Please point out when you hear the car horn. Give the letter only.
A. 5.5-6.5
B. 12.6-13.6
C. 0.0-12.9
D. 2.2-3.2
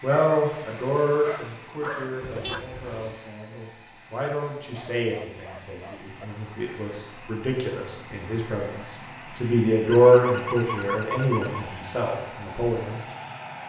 D.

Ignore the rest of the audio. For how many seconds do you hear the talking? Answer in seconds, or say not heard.
13 s.